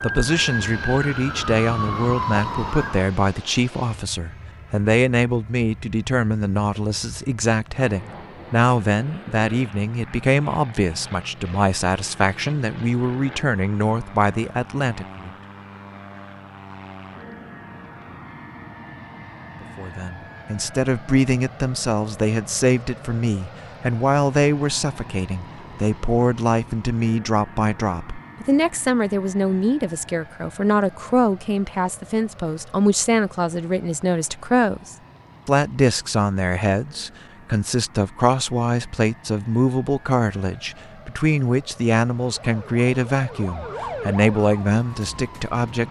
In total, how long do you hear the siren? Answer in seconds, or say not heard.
7 s.